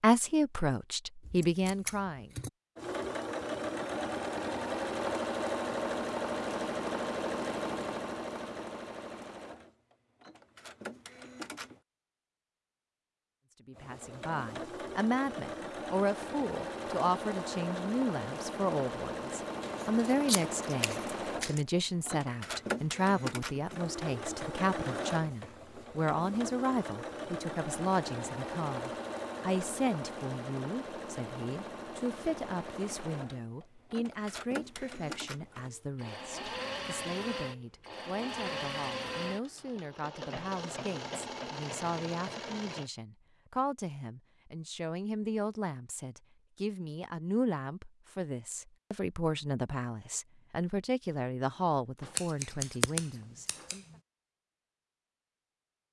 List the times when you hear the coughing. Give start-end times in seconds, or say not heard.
not heard.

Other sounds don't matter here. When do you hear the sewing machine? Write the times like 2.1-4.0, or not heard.
2.8-11.8, 13.8-42.9.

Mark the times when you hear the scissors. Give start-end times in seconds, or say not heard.
1.2-2.5, 19.6-21.6, 52.0-53.8.